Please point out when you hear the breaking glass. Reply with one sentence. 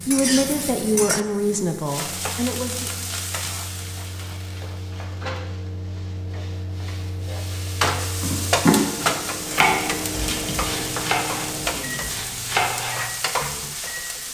You can't hear the breaking glass here.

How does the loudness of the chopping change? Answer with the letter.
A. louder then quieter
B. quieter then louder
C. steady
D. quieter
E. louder
B.